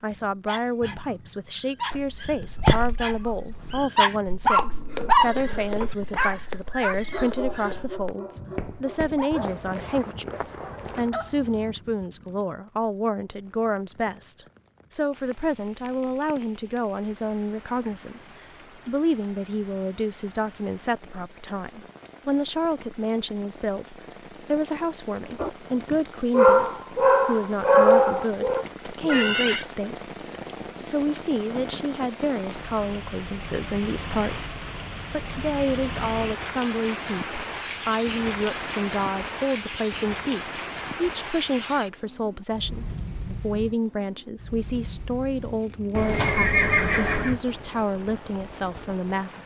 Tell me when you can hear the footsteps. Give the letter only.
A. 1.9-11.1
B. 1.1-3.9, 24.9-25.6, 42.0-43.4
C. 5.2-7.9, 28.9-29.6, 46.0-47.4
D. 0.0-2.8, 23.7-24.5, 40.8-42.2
A.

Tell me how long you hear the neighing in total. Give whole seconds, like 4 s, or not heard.
5 s.